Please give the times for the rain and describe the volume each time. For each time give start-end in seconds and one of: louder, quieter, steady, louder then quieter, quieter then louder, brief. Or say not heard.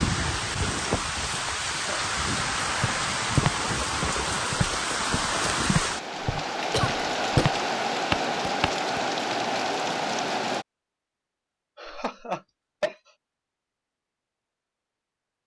0.0-10.7 steady.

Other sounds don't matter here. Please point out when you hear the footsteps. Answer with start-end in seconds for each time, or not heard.
2.8-9.0.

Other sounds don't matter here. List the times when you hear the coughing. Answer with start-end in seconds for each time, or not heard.
1.7-2.1, 6.7-7.6, 11.8-12.9.